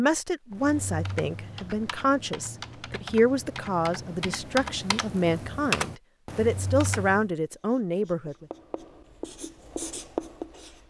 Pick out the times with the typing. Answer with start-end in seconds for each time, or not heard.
0.5-7.3.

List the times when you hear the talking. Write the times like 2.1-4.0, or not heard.
0.0-8.4.